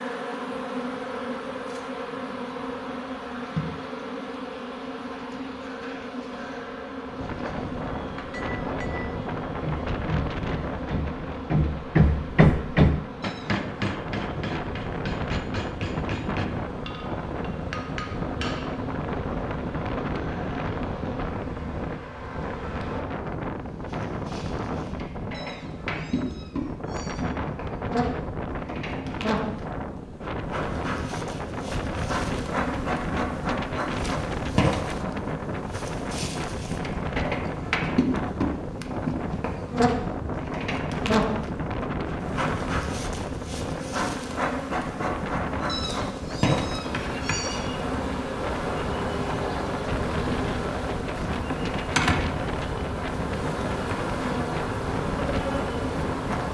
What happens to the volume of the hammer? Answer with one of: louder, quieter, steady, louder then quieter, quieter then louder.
louder then quieter.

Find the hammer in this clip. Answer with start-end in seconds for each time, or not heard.
8.1-18.8.